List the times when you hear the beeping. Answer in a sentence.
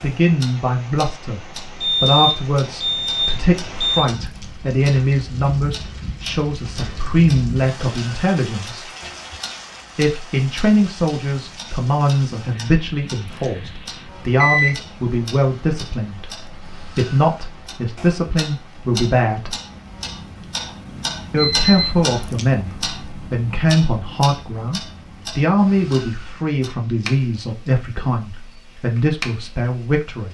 The beeping can be heard from 1.8 to 4.0 s, from 14.3 to 14.8 s and from 21.4 to 21.9 s.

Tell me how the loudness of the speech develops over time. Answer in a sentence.
The volume of the speech stays about the same.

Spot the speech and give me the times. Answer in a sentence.
The speech can be heard from 0.0 to 8.8 s, from 9.9 to 19.6 s and from 21.3 to 30.2 s.